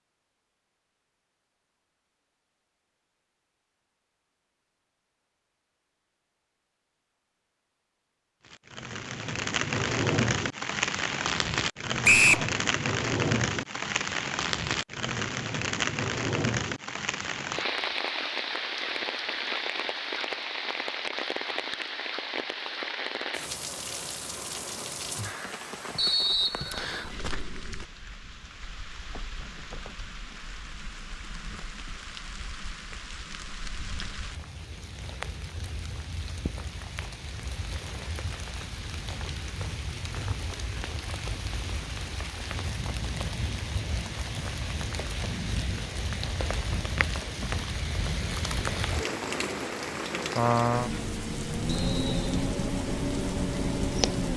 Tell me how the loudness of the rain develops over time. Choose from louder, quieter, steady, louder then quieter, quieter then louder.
quieter then louder.